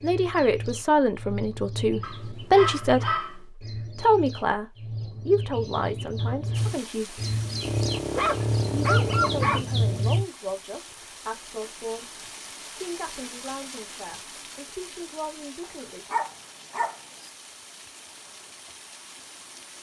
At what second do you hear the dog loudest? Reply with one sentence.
The volume of the dog peaks at 9 seconds.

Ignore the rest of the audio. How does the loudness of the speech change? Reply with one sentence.
The volume of the speech goes down.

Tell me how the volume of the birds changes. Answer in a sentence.
The loudness of the birds goes up.